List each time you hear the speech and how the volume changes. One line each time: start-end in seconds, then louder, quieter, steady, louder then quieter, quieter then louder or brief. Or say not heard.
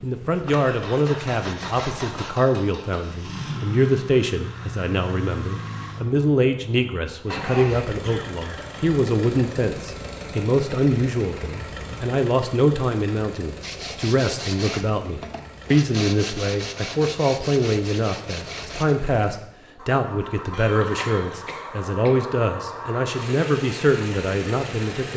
0.0-25.1 steady.